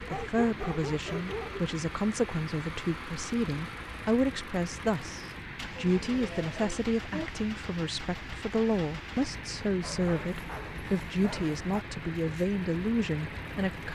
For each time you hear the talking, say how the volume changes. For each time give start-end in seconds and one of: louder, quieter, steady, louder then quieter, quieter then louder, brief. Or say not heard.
0.1-13.9 steady.